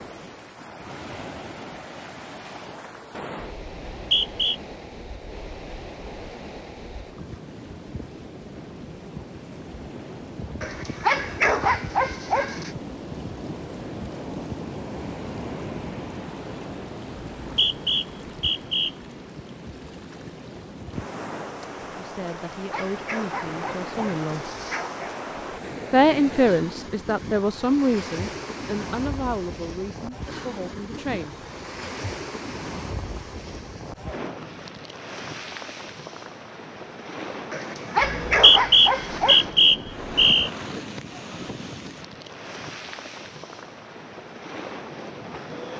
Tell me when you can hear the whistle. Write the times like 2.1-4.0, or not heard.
3.9-4.5, 17.4-18.9, 38.0-40.5.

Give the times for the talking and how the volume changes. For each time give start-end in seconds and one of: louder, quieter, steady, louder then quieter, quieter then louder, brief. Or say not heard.
21.9-24.5 brief
25.9-31.4 quieter.